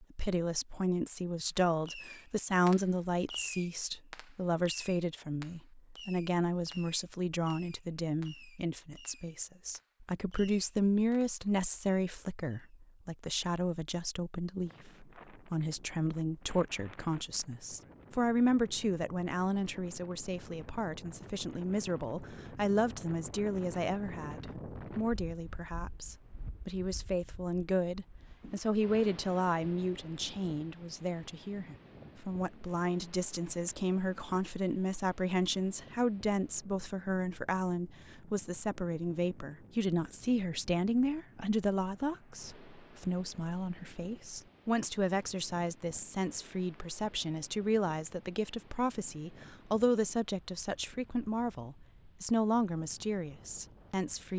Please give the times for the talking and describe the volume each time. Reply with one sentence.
The talking can be heard from 0.0 to 54.3 s, at a steady volume.